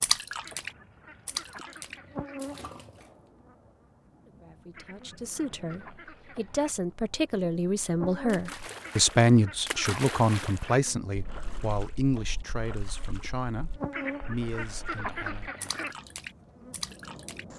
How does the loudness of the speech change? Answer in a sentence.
The loudness of the speech goes up, then down.